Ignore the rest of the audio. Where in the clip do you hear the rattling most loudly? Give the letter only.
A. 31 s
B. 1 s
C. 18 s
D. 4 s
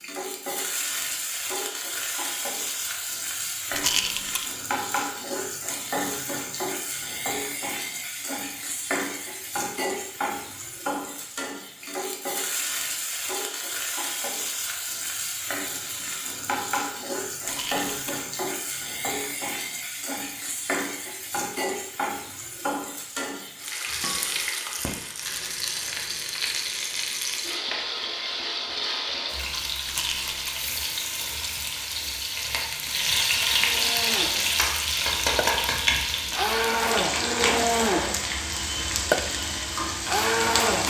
D.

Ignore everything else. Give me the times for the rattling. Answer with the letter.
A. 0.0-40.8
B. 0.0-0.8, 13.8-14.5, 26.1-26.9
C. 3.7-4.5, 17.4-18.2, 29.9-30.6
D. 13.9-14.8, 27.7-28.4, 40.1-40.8
C.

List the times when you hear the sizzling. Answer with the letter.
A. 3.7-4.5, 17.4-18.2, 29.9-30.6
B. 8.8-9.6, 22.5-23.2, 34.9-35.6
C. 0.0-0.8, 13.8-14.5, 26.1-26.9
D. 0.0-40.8
D.